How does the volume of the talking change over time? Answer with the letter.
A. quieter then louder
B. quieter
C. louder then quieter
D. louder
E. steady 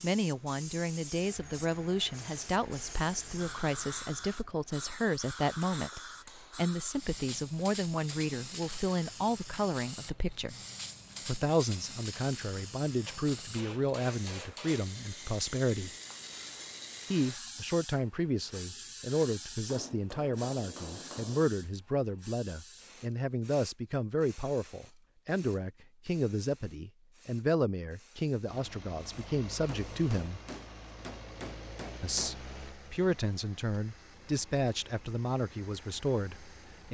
E.